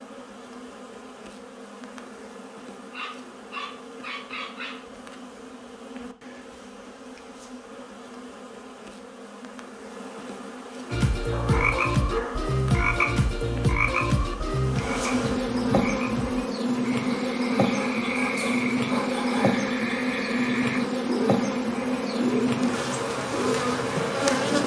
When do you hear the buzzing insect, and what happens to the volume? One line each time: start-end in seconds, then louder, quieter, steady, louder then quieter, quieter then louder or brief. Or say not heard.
0.0-24.6 louder.